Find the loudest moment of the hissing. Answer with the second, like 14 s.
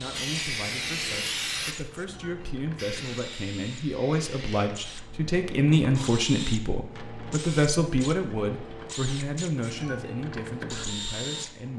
1 s.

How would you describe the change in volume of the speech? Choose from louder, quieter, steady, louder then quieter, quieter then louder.
louder then quieter.